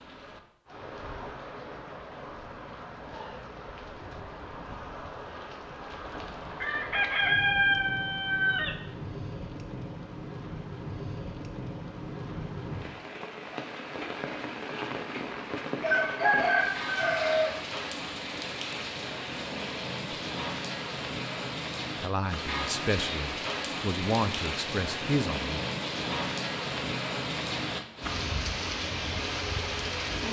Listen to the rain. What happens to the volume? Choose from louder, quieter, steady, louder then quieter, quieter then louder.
louder.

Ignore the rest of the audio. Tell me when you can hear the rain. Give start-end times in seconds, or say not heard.
0.0-30.2.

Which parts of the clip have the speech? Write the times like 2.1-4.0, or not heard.
22.0-25.6.